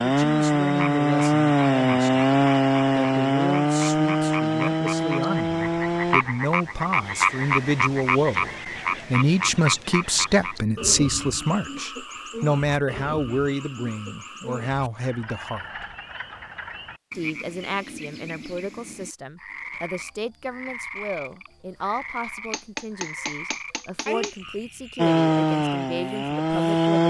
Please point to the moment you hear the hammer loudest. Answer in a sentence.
The volume of the hammer peaks at 23 seconds.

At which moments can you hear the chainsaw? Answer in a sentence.
The chainsaw can be heard from 0.0 to 6.2 s and from 24.9 to 27.0 s.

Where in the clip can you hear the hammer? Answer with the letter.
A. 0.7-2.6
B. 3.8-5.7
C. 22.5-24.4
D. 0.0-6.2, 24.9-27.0
C.